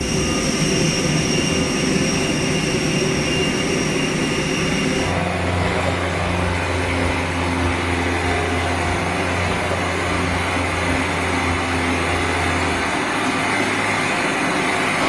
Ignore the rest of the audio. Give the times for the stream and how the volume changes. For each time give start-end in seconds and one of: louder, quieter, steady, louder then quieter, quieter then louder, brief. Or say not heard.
0.0-15.0 louder.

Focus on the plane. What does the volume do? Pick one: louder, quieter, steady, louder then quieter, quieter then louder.
quieter.